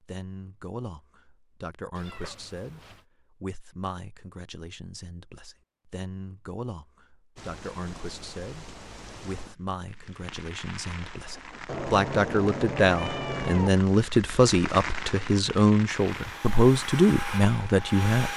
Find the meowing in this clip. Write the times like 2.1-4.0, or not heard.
1.9-3.0, 11.7-13.7.